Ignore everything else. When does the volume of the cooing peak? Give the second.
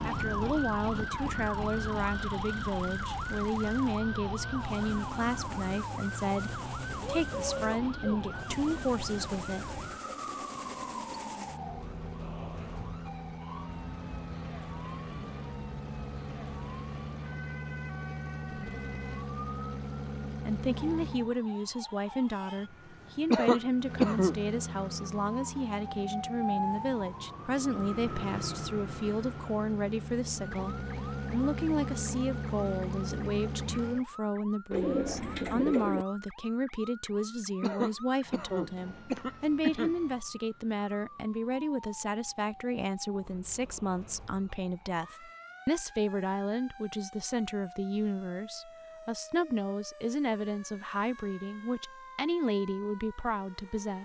35 s.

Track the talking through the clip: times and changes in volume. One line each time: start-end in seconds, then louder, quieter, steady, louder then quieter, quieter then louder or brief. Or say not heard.
0.1-9.8 steady
20.4-53.9 steady.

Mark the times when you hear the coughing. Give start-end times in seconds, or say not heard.
23.3-24.4, 37.6-40.0.